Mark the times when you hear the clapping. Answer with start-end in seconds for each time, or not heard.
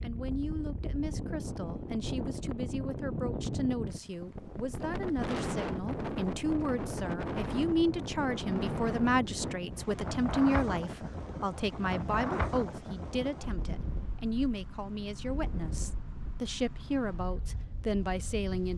not heard.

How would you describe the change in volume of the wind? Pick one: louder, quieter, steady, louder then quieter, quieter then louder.
quieter.